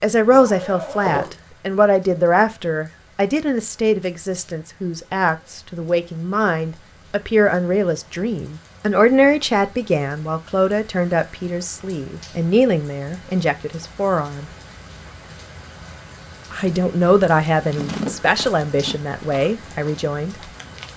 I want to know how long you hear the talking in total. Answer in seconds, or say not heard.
18 s.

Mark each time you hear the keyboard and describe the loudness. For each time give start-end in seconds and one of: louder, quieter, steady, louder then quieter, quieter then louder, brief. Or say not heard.
not heard.